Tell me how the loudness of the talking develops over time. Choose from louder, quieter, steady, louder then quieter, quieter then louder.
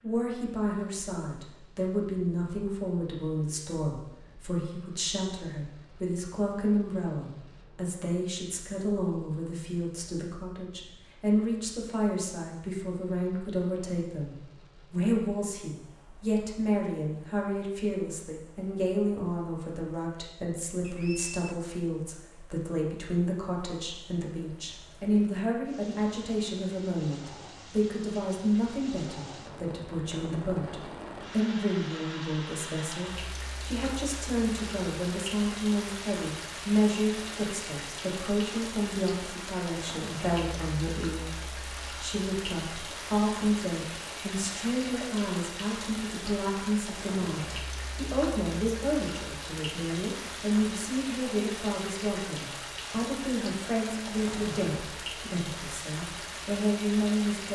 steady.